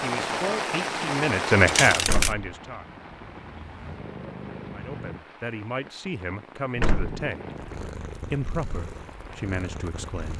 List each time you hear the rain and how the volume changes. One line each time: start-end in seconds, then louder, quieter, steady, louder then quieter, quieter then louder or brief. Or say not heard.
0.0-10.3 quieter.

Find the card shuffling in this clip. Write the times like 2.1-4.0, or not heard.
1.6-2.4.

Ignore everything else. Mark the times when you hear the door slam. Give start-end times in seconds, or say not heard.
2.0-2.5, 6.8-7.2.